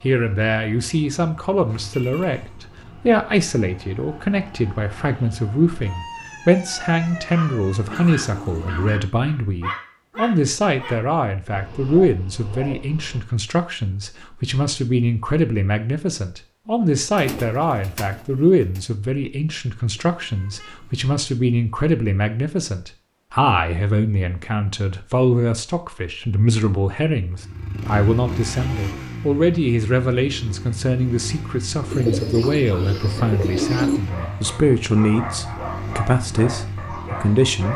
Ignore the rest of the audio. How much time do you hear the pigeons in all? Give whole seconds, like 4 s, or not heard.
5 s.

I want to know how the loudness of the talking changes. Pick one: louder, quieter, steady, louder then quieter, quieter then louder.
steady.